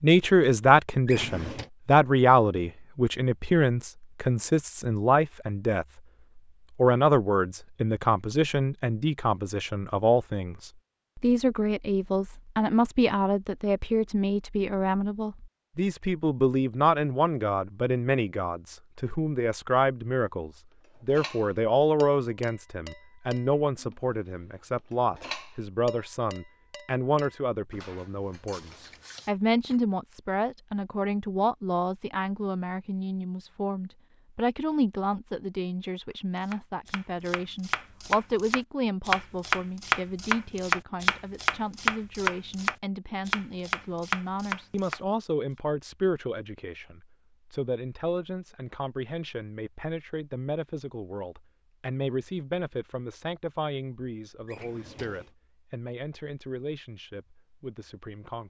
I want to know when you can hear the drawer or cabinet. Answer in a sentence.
The drawer or cabinet can be heard from 1.1 to 1.7 s and from 54.5 to 55.3 s.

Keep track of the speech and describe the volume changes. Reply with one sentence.
The volume of the speech goes down.